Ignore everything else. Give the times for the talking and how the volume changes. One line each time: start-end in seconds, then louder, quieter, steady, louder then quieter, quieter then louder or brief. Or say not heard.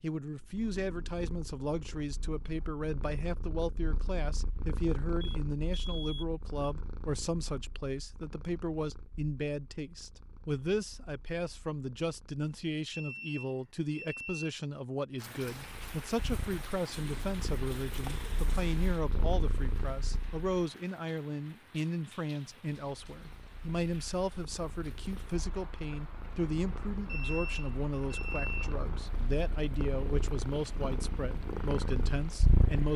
0.0-32.9 steady.